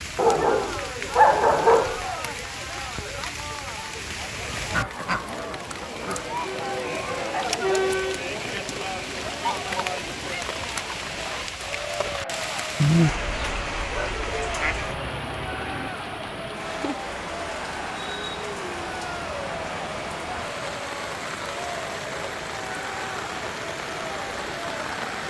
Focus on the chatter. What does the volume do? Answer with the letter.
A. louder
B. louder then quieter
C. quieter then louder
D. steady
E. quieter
B.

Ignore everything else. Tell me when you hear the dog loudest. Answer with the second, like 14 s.
1 s.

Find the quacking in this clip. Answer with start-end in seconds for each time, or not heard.
4.7-6.2, 13.1-14.9.